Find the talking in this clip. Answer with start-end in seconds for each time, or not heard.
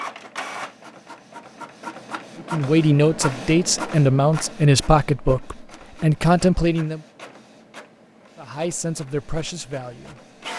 2.5-7.0, 8.3-10.2.